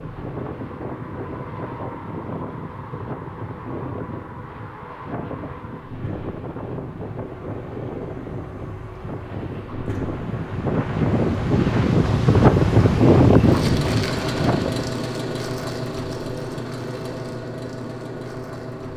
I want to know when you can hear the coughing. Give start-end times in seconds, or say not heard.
not heard.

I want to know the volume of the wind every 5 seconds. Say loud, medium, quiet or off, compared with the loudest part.
quiet, quiet, loud, off.